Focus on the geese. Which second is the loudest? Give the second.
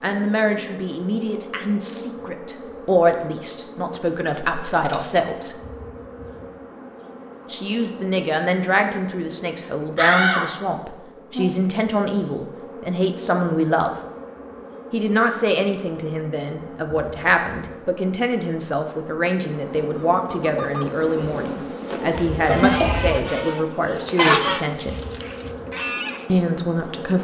24 s.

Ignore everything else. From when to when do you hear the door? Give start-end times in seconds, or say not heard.
4.2-5.0, 9.9-10.7, 22.1-23.1.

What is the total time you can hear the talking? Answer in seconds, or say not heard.
23 s.